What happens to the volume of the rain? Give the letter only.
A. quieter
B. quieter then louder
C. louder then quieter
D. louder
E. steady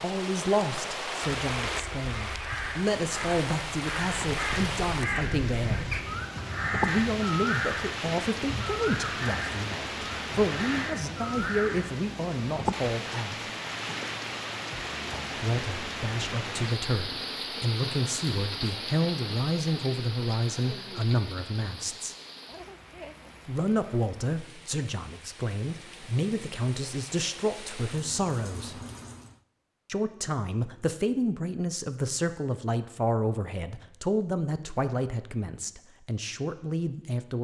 A.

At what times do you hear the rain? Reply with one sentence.
You can hear the rain from 0.0 to 29.4 s.